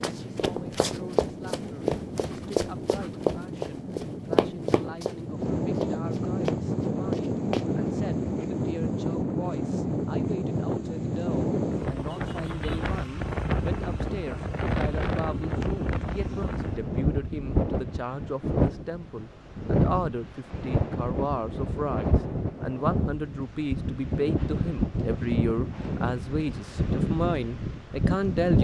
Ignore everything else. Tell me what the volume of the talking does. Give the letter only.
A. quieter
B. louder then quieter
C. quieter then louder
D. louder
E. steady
D.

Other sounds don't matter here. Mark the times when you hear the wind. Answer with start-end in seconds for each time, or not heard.
0.0-28.5.